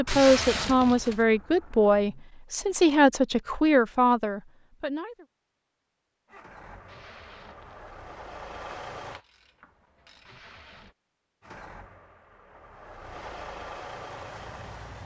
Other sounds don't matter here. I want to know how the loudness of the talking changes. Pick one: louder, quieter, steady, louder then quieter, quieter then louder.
steady.